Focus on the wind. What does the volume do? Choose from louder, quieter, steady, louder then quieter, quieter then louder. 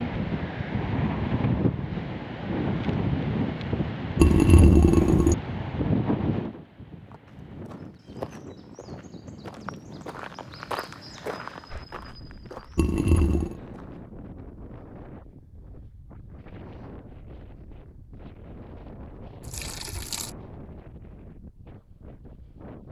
quieter.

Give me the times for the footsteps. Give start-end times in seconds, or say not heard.
7.1-14.0.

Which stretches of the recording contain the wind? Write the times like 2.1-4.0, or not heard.
0.0-22.8.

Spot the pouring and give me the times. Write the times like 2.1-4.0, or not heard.
4.2-5.3, 12.8-13.6, 19.4-20.3.